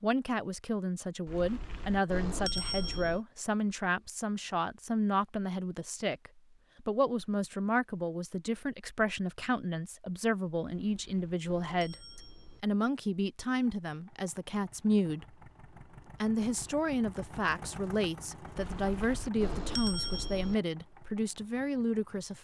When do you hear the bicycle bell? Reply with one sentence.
The bicycle bell can be heard from 1.2 to 3.2 s, from 10.6 to 12.7 s and from 18.6 to 20.6 s.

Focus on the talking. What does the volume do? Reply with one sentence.
The volume of the talking stays about the same.